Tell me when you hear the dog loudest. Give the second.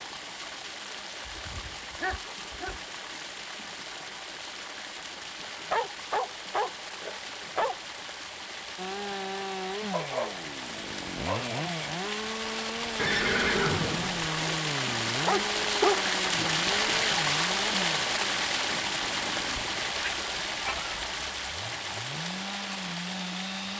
16 s.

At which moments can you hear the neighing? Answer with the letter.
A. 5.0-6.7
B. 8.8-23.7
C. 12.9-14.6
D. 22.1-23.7
C.